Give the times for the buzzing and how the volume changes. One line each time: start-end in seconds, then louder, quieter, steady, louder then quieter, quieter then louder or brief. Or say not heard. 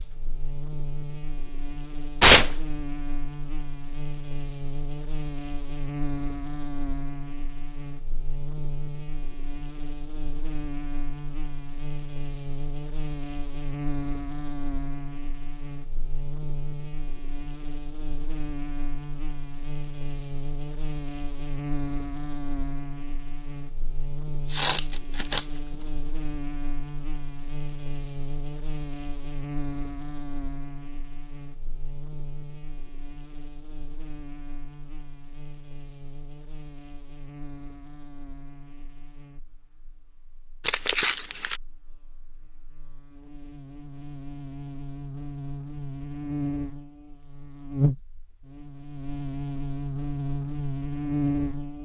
0.0-51.8 quieter then louder.